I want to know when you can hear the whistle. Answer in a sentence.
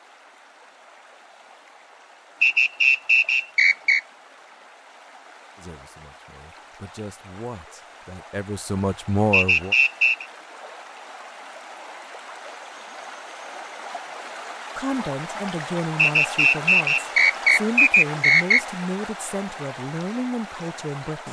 The whistle can be heard from 2.4 to 4.0 s, from 9.3 to 10.2 s and from 15.9 to 18.6 s.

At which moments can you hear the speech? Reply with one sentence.
The speech can be heard from 5.5 to 9.8 s and from 14.8 to 21.2 s.